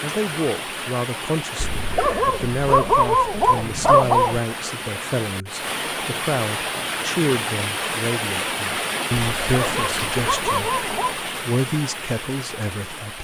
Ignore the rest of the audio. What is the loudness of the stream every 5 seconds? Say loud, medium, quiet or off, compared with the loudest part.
medium, loud, loud.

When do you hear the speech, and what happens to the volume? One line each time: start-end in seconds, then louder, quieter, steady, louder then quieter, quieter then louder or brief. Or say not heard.
0.0-13.1 steady.